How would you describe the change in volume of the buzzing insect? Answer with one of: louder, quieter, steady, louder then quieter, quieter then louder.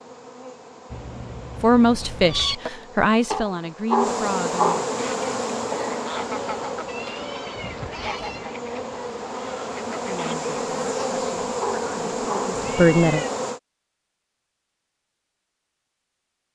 louder.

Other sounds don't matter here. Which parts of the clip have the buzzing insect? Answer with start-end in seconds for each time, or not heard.
0.0-13.6.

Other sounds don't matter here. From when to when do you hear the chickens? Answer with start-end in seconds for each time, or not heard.
4.9-10.4.